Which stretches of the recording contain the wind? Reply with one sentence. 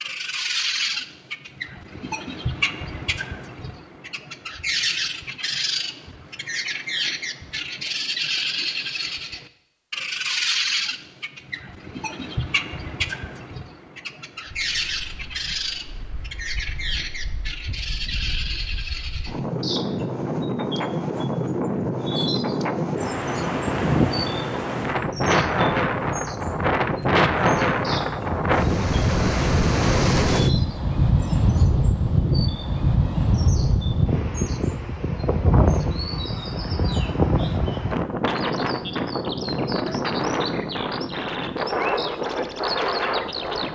You can hear the wind from 14.5 to 43.7 s.